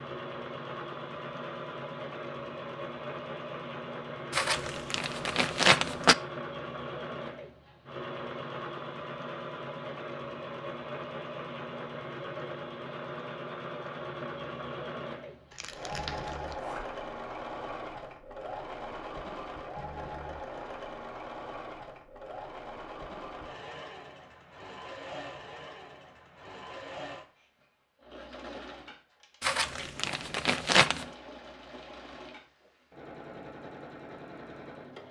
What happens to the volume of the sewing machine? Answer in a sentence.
The volume of the sewing machine goes down.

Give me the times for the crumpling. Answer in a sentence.
The crumpling can be heard from 4.3 to 6.2 s, from 15.5 to 16.6 s and from 29.4 to 31.1 s.